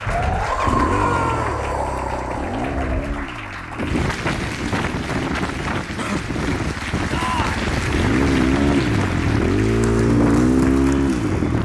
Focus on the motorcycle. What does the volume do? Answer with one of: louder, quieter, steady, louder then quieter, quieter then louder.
quieter then louder.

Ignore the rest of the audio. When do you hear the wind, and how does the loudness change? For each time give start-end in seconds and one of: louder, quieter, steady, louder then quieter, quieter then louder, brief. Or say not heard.
0.0-11.5 steady.